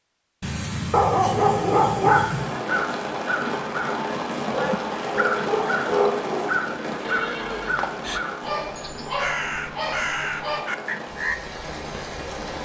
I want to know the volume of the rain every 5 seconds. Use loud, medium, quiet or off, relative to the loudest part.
loud, loud, medium.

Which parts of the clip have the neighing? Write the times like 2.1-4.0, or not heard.
7.0-8.2.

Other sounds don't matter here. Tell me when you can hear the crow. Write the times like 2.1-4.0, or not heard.
2.0-11.3.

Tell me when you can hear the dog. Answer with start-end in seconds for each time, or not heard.
0.4-2.6, 4.5-6.5, 8.4-10.7.